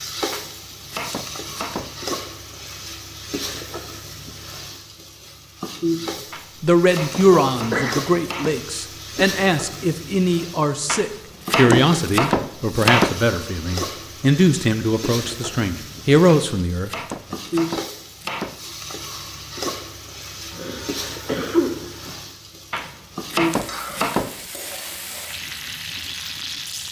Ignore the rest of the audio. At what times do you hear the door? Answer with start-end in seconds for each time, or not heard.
not heard.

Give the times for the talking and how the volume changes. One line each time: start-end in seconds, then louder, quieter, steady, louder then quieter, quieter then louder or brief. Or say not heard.
6.0-17.4 steady.